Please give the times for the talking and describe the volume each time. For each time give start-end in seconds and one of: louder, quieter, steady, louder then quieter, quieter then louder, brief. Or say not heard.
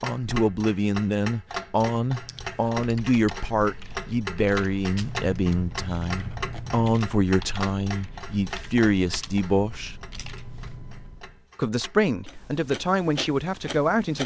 0.0-9.9 steady
11.6-14.2 brief.